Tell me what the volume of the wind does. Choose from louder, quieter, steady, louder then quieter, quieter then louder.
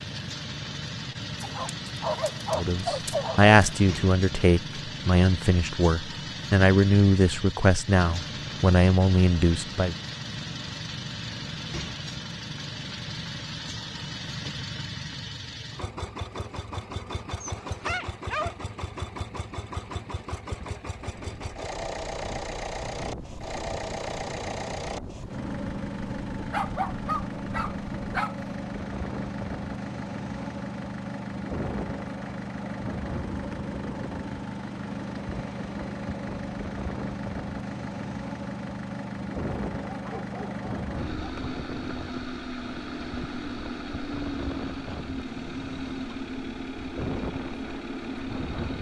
steady.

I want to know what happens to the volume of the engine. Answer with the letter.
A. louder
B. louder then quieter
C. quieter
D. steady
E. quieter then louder
D.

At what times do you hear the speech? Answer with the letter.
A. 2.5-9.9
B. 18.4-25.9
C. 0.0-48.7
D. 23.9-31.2
A.